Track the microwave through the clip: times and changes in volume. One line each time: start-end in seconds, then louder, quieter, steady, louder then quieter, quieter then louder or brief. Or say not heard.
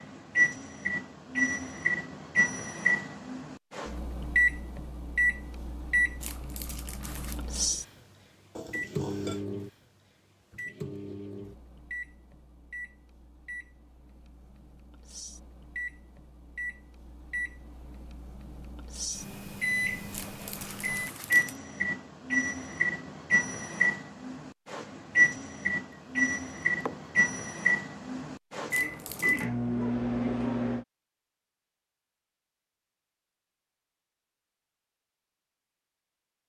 0.0-30.9 quieter then louder.